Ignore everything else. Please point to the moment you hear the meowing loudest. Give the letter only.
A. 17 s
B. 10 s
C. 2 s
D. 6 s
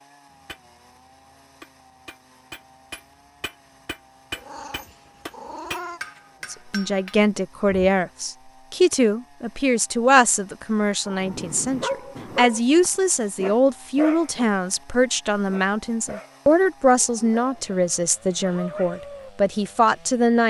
D.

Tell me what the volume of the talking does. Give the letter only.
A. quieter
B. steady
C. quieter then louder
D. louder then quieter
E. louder
B.